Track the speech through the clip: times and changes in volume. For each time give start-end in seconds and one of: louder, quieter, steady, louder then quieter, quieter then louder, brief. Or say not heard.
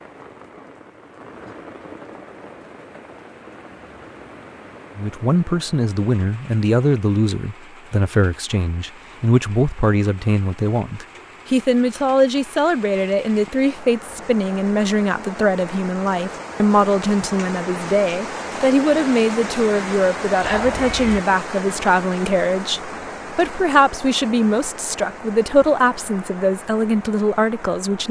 5.0-28.0 steady.